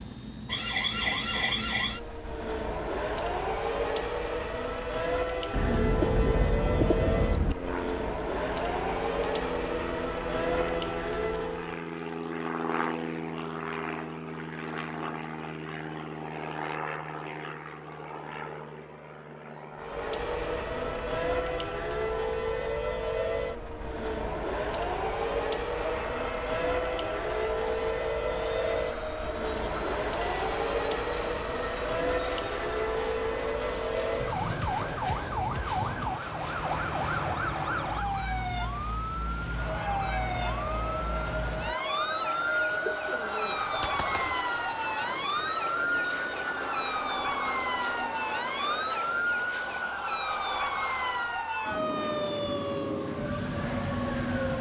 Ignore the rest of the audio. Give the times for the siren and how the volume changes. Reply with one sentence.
The siren can be heard from 0.0 to 11.8 s, at a steady volume; and from 19.8 to 54.5 s, at a steady volume.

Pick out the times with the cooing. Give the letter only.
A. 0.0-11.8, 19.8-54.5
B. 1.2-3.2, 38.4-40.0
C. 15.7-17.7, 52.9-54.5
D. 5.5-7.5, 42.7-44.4
D.